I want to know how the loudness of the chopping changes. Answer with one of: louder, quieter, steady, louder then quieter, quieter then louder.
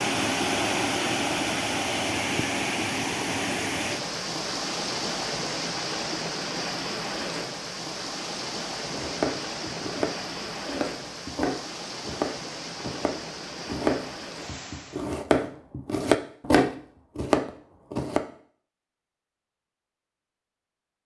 louder.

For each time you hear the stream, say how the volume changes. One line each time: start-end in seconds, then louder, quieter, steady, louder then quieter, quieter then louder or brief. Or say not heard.
0.0-15.2 quieter.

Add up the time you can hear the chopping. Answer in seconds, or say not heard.
9 s.